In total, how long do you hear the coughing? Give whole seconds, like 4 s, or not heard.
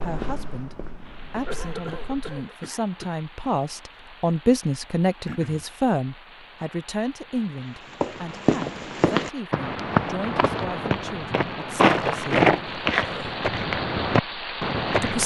3 s.